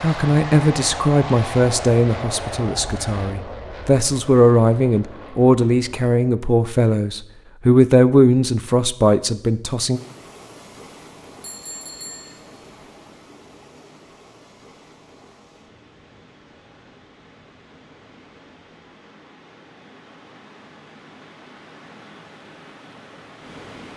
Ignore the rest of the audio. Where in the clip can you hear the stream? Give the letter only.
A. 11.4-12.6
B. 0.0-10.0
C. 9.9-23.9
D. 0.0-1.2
C.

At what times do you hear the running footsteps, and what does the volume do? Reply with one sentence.
You can't hear the running footsteps here.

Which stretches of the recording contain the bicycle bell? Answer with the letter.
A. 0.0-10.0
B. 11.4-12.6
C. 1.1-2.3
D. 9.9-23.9
B.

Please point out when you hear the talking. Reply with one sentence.
The talking can be heard from 0.0 to 10.0 s.